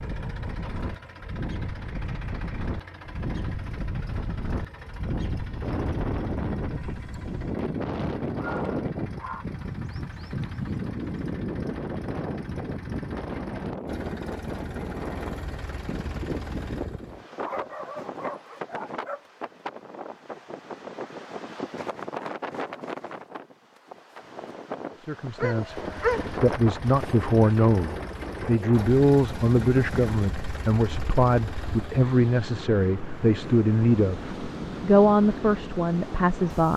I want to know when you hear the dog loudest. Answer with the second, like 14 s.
26 s.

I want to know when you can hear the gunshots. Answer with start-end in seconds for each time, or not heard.
not heard.